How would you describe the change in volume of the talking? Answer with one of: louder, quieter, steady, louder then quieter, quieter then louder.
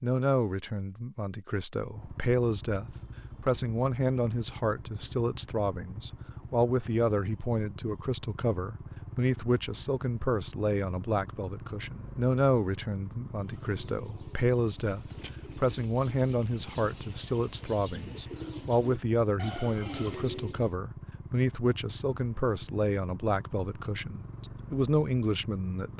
steady.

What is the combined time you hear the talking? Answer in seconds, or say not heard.
26 s.